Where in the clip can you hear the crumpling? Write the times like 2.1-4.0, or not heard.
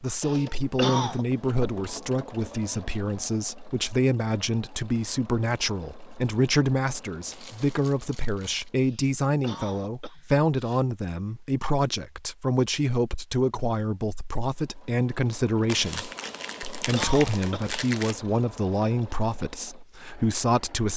7.3-8.7, 15.7-18.1.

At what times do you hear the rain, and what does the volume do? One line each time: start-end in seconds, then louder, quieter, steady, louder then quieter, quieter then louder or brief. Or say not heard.
not heard.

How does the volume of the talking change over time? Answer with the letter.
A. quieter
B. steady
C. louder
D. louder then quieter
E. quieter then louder
B.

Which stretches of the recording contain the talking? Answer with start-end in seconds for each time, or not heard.
0.0-20.9.